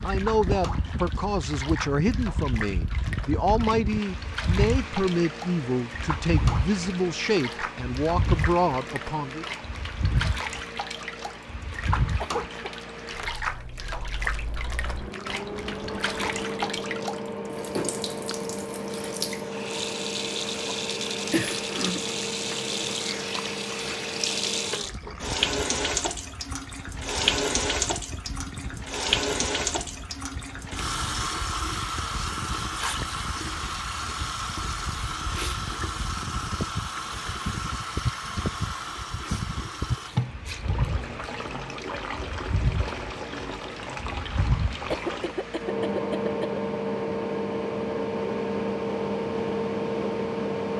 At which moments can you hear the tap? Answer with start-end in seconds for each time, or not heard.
0.0-45.4.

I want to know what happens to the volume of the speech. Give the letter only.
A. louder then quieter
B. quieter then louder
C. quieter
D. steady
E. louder
D.